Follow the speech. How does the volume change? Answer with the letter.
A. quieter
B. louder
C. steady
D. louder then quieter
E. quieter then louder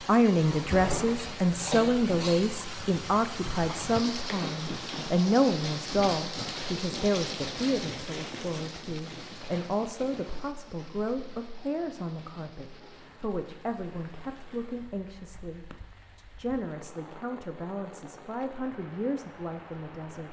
A.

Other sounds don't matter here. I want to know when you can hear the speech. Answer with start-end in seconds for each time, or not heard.
0.1-20.2.